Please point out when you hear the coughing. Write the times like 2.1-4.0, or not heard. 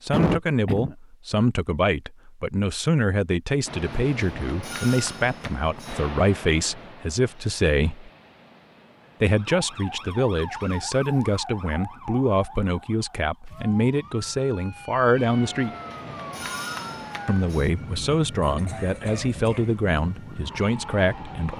0.1-0.9, 18.4-19.8.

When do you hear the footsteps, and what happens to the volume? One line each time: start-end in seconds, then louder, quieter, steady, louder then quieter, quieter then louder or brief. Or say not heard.
not heard.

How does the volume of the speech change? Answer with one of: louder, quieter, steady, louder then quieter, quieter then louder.
steady.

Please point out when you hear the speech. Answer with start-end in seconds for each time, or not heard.
0.0-8.1, 9.2-15.7, 17.2-21.5.